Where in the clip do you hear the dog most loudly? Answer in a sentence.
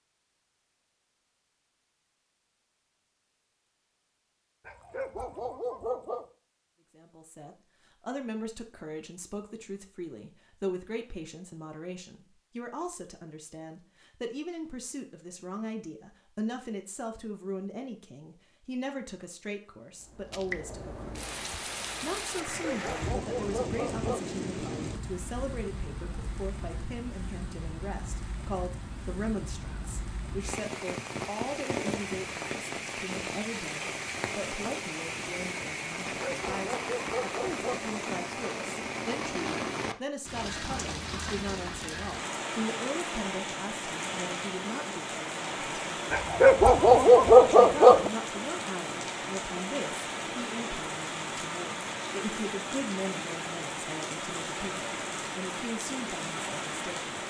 The volume of the dog peaks at 47 seconds.